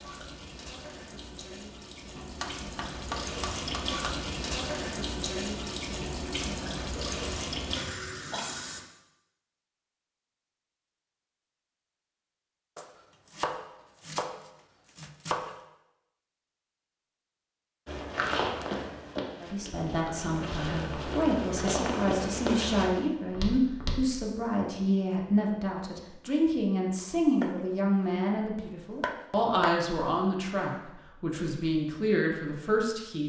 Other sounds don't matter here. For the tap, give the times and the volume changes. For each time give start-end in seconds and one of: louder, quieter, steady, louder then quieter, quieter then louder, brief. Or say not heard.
0.0-8.8 louder.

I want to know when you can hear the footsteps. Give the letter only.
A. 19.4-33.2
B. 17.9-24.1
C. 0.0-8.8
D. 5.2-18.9
B.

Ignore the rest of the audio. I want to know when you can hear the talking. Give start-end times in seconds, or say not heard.
19.4-33.2.